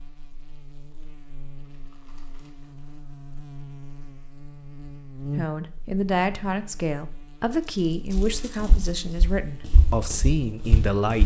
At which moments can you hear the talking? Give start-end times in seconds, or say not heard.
5.3-11.2.